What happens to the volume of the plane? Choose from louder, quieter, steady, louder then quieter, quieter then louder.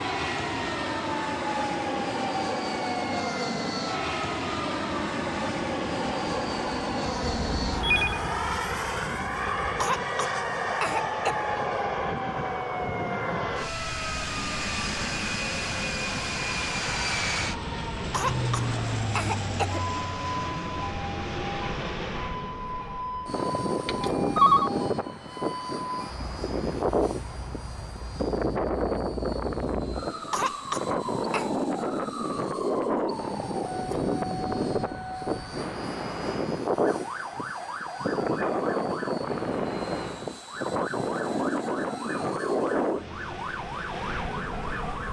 steady.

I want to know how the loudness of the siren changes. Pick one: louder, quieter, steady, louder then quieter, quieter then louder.
steady.